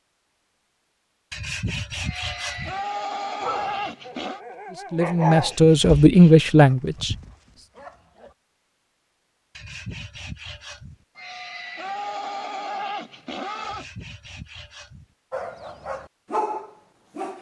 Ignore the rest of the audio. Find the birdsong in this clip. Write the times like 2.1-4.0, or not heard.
not heard.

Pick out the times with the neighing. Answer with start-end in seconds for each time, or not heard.
2.0-4.4, 11.2-13.8.